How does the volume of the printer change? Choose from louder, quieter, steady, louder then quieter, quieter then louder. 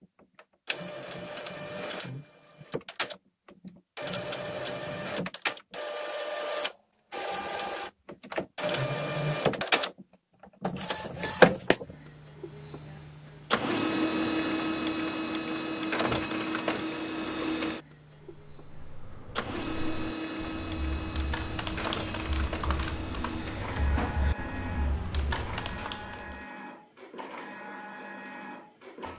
louder then quieter.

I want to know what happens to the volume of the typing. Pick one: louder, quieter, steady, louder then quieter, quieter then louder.
louder.